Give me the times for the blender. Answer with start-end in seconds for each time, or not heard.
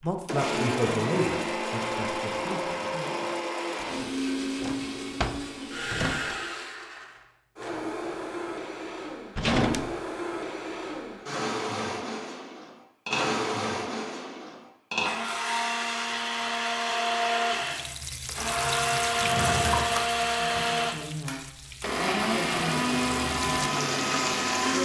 0.2-24.8.